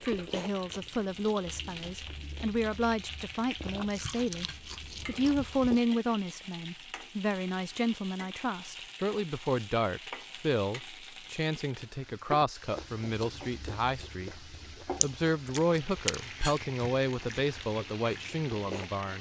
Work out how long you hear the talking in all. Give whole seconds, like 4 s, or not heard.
19 s.